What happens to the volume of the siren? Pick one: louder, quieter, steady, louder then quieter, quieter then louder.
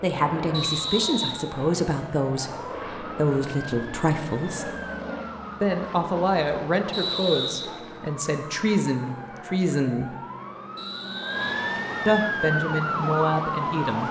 louder.